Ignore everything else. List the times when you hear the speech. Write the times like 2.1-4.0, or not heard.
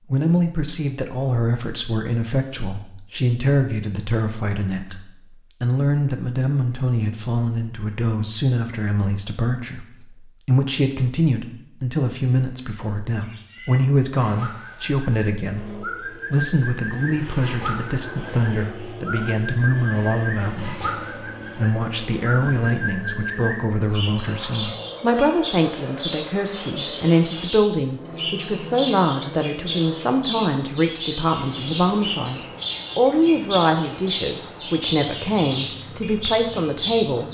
0.1-37.2.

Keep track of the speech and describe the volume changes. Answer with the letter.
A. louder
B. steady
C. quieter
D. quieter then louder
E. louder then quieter
B.